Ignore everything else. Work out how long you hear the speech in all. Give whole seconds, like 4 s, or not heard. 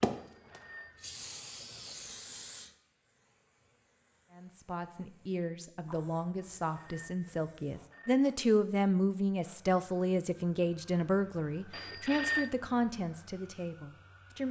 10 s.